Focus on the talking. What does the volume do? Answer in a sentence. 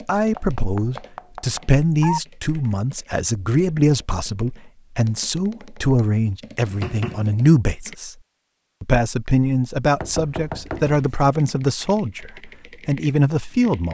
The loudness of the talking stays about the same.